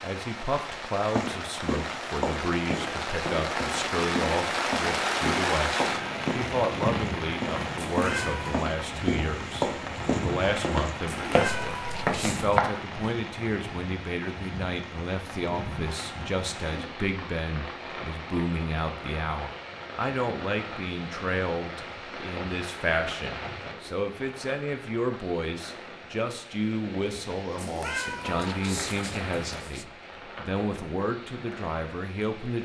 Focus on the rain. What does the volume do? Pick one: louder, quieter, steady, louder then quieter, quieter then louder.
quieter.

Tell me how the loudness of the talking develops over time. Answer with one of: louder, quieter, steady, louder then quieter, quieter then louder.
steady.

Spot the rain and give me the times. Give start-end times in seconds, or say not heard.
0.0-32.6.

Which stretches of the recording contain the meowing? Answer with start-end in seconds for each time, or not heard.
7.8-8.5, 11.1-12.6, 27.6-29.9.